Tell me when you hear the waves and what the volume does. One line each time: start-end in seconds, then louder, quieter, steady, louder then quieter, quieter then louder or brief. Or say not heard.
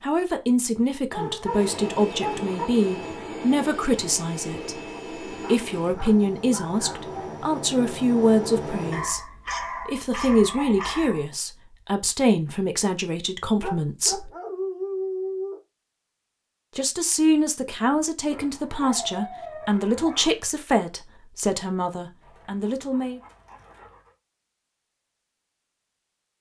not heard.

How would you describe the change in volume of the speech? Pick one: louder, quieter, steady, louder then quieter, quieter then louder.
steady.